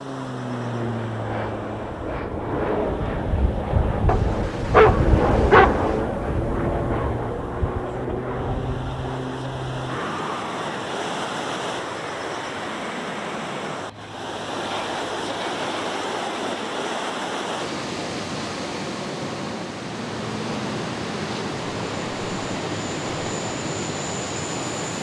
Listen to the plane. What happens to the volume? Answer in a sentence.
The loudness of the plane goes down.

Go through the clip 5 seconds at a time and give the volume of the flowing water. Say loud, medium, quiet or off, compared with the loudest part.
medium, medium, loud, loud, loud.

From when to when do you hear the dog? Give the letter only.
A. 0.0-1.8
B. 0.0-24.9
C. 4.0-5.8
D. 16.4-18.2
C.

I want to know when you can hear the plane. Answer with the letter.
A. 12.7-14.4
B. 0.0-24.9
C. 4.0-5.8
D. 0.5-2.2
B.